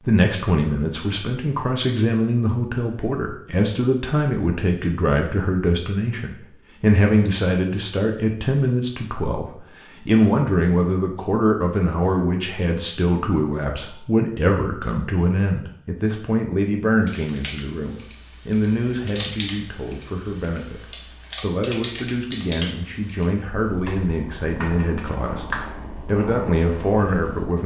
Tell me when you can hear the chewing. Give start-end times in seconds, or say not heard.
not heard.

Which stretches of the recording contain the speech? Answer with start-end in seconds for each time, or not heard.
0.1-27.6.